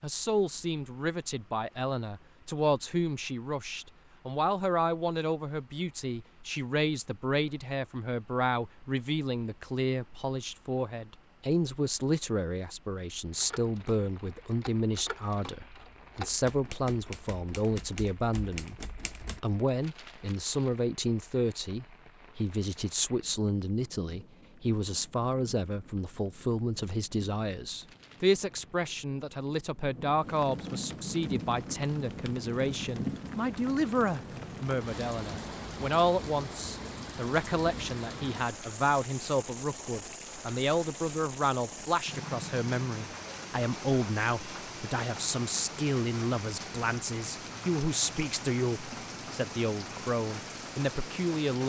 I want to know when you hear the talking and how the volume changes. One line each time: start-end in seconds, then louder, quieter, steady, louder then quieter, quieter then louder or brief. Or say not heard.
0.0-51.6 steady.